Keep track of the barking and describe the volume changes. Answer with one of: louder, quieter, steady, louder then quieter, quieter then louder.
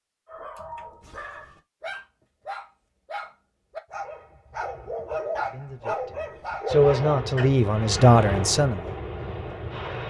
louder.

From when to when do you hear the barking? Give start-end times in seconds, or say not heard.
0.2-7.5.